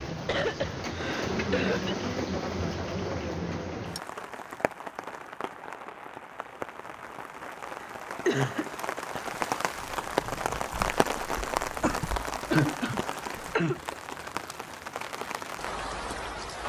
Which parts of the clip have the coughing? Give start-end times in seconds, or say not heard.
0.1-2.0, 7.8-8.7, 11.8-13.8.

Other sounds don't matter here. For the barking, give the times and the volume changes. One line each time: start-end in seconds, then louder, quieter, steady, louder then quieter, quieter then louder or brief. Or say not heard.
not heard.